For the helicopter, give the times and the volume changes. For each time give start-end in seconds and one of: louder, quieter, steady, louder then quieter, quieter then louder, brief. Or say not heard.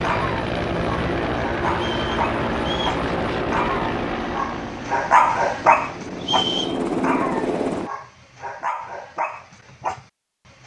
0.0-7.9 quieter then louder.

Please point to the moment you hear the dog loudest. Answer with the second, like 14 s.
5 s.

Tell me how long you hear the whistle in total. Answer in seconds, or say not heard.
2 s.